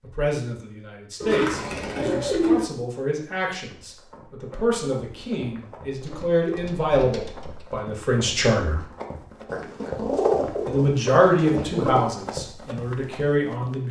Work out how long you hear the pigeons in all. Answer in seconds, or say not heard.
6 s.